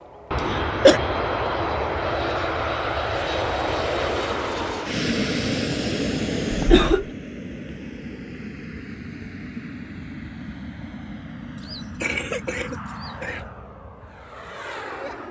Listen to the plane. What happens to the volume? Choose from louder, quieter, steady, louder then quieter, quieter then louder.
quieter.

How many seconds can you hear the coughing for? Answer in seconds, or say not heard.
3 s.